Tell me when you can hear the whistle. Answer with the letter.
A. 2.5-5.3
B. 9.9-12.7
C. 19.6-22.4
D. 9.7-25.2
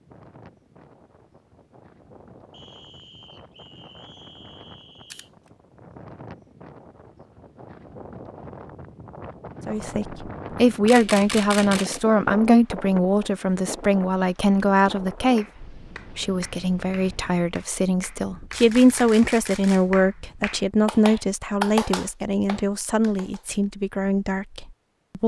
A.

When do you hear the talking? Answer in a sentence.
The talking can be heard from 9.7 to 25.2 s.